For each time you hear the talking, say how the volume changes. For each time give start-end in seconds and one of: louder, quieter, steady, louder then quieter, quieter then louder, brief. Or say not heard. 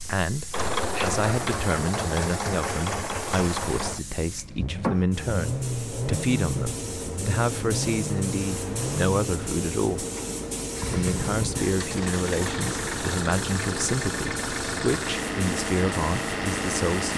0.0-10.1 steady
10.9-17.1 steady.